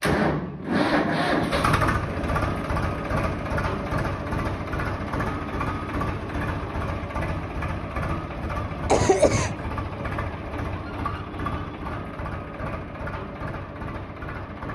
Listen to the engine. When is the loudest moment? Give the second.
1 s.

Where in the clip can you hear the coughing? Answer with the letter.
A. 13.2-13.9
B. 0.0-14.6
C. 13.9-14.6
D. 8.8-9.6
D.